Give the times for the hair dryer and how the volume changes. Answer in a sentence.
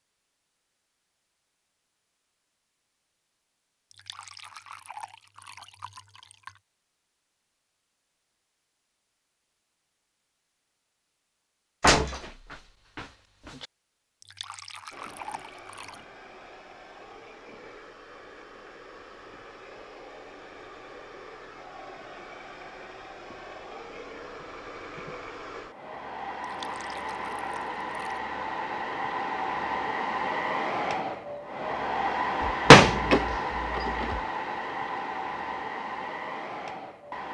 You can hear the hair dryer from 14.9 to 37.2 s, getting louder.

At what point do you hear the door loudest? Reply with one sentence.
The loudest moment of the door is at 33 seconds.